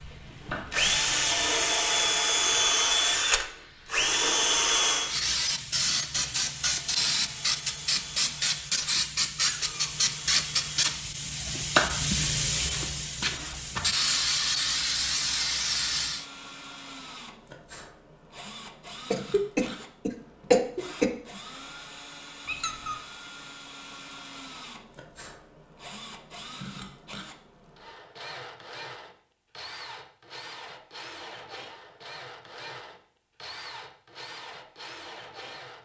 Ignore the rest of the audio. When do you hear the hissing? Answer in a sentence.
You can hear the hissing from 0.0 to 16.2 s.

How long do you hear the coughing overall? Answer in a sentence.
You can hear the coughing for 2 seconds altogether.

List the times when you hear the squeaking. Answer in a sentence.
The squeaking can be heard from 9.3 to 10.3 s and from 22.4 to 22.9 s.